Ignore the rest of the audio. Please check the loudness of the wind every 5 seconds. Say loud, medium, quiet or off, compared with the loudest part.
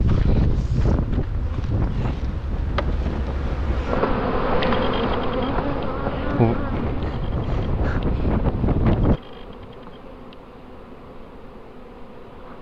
loud, loud, off.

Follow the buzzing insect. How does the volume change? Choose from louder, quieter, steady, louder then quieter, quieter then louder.
louder then quieter.